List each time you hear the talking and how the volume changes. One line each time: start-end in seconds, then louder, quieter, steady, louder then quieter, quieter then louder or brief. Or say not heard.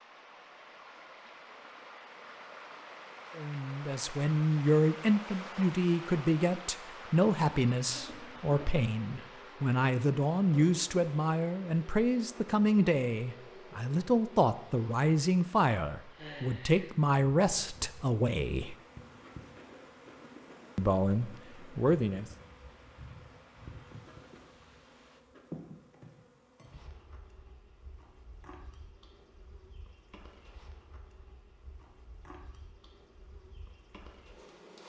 3.4-18.8 steady
20.8-22.3 brief.